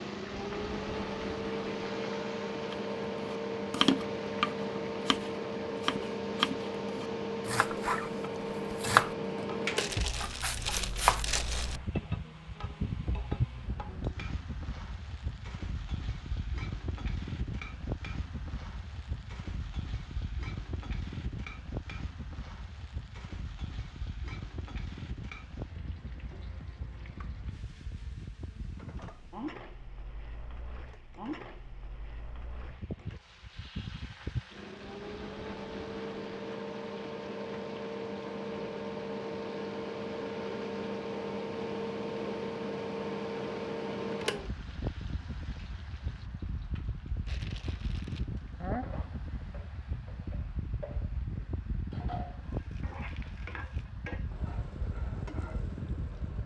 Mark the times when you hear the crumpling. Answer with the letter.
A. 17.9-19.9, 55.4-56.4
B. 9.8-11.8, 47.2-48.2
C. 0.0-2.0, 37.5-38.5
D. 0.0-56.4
B.